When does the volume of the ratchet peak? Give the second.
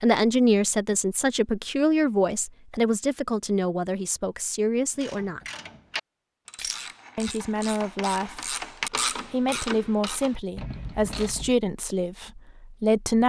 9 s.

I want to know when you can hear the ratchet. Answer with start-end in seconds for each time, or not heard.
5.0-11.6.